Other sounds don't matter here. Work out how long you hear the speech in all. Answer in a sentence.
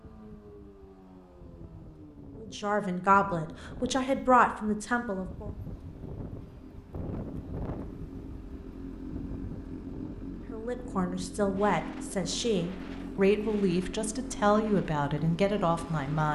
The speech can be heard for 9 seconds in total.